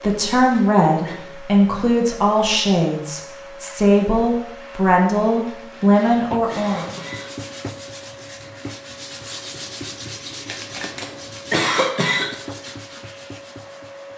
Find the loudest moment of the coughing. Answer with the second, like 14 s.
12 s.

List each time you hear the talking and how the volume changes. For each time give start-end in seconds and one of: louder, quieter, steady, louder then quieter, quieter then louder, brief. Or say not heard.
0.0-6.8 steady.